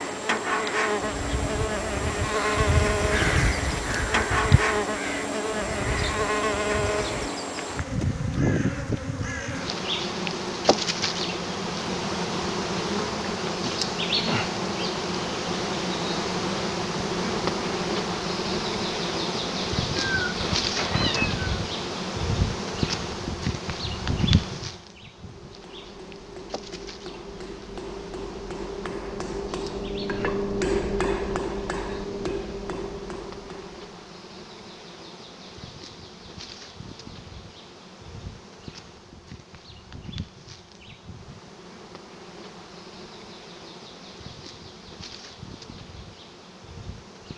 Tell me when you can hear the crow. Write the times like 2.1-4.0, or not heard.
1.0-9.8.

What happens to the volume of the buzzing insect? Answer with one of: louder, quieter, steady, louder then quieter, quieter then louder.
quieter.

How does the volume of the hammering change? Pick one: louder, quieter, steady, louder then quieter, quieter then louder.
louder then quieter.